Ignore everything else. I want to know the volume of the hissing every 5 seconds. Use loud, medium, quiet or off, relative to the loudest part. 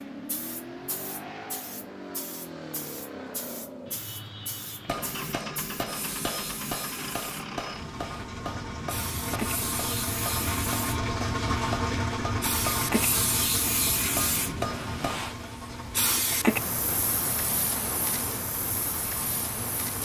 quiet, medium, loud, loud.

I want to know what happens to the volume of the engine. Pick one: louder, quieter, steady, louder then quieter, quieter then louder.
louder then quieter.